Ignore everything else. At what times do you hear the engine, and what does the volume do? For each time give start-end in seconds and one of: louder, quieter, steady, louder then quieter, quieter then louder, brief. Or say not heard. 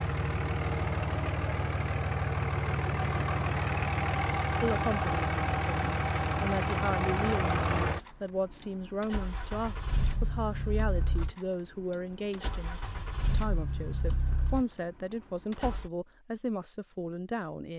0.0-15.9 quieter.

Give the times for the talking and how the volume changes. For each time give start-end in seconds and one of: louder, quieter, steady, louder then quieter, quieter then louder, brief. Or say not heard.
4.6-17.7 steady.